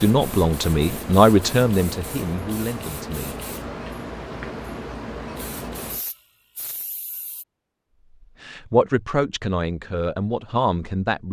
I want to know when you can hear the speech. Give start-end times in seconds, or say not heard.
0.0-3.4, 8.4-11.2.